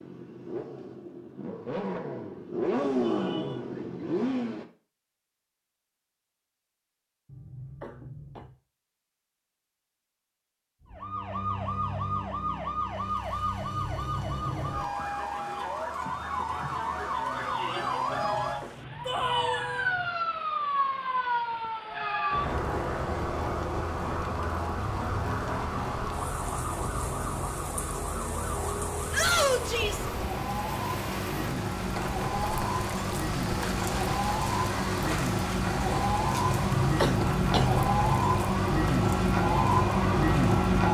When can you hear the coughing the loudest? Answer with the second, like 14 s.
37 s.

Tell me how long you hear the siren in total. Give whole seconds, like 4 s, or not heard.
30 s.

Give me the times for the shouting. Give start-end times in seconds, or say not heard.
3.0-3.6, 19.1-19.9, 29.1-30.1.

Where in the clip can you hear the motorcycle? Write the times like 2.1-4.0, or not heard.
0.0-4.7.